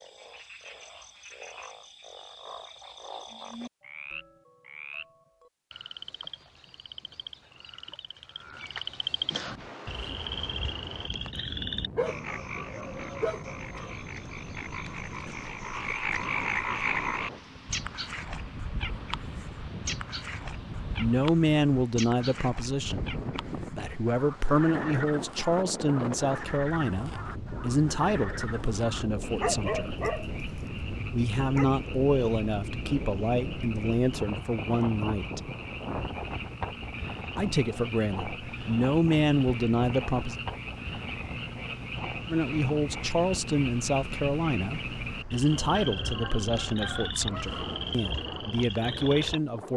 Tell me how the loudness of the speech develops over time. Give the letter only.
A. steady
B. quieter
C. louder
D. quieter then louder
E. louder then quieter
A.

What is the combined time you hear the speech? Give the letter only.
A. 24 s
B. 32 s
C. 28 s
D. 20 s
A.